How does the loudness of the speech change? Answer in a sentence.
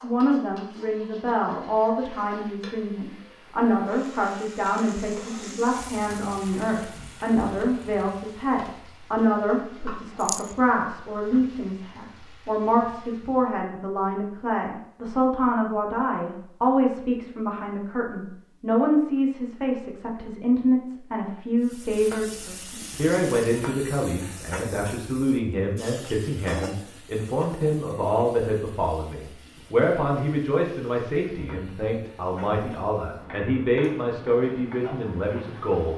The loudness of the speech stays about the same.